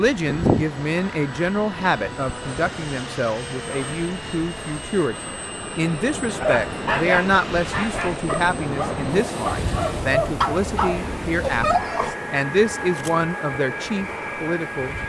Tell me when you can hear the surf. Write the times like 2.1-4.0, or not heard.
0.0-15.0.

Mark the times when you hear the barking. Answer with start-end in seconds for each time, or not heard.
6.4-12.2.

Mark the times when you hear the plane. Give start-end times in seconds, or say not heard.
0.0-15.0.